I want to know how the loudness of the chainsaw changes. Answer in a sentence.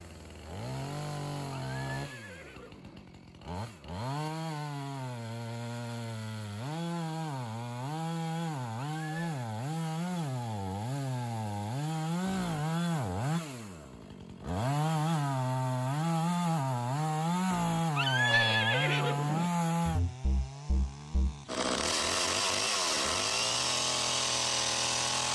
The volume of the chainsaw goes up.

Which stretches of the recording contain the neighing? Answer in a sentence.
You can hear the neighing from 1.5 to 3.0 s, from 8.9 to 9.4 s and from 17.9 to 19.5 s.